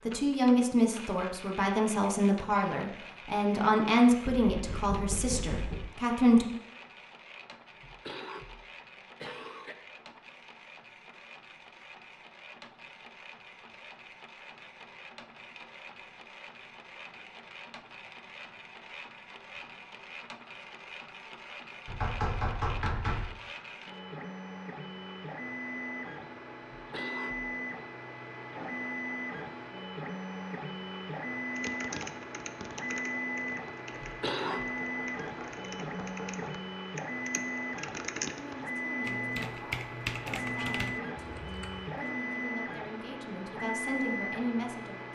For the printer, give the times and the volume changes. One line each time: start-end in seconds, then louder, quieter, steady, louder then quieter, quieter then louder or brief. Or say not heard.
0.0-45.0 louder.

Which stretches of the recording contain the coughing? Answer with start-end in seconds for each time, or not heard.
7.8-9.8, 26.8-27.5, 34.0-34.6.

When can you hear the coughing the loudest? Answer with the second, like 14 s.
34 s.